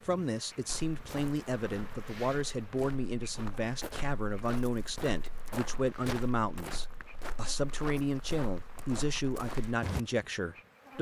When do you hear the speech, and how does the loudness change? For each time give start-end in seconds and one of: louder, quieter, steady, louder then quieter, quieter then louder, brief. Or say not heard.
0.1-10.9 steady.